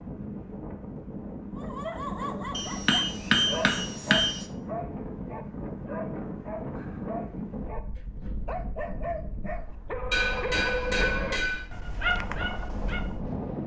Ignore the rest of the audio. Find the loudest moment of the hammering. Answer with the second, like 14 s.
3 s.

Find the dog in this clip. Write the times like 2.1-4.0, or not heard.
1.6-13.1.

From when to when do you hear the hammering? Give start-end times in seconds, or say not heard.
2.5-4.4, 10.1-11.7.